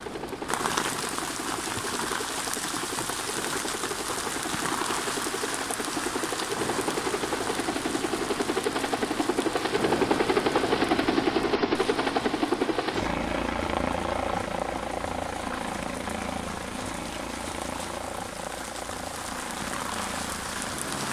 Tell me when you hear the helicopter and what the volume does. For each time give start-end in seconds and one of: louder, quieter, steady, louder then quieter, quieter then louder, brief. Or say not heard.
0.0-21.0 louder then quieter.